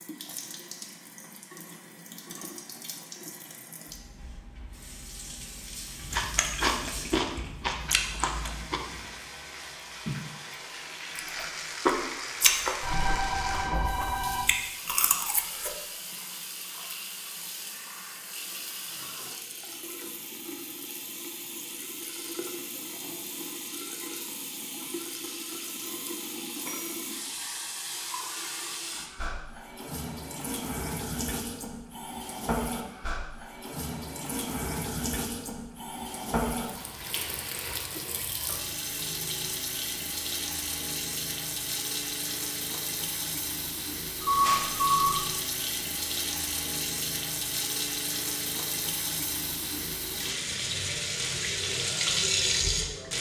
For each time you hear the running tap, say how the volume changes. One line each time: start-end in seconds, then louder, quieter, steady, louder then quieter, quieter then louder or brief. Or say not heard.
0.0-53.1 louder.